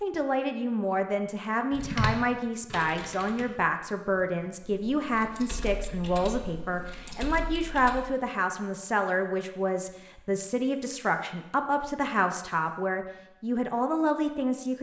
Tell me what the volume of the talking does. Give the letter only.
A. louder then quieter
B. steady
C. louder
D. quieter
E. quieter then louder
B.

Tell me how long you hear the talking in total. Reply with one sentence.
The talking can be heard for 15 seconds in total.